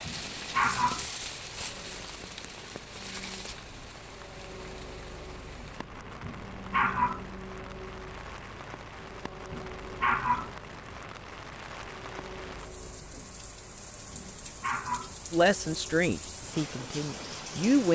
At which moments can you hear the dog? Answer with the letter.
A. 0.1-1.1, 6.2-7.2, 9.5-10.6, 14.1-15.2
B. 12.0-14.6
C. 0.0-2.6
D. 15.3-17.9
A.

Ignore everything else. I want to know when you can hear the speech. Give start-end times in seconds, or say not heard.
15.3-17.9.